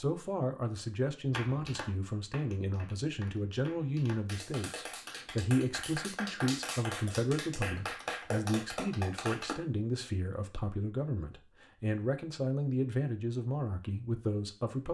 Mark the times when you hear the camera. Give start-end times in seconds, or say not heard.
not heard.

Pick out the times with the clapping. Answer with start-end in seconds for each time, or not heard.
1.3-9.6.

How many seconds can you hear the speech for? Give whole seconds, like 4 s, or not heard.
15 s.